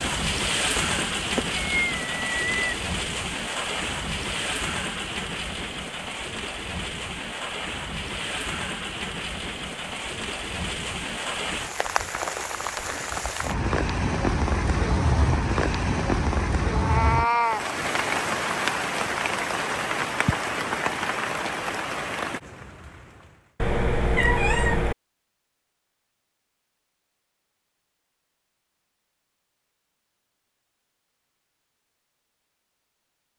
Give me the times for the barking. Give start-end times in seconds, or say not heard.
not heard.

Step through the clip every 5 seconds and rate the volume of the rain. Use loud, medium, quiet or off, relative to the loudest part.
loud, medium, loud, loud, loud, off, off.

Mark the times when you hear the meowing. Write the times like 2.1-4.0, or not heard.
0.8-2.8, 16.7-17.6, 23.6-24.9.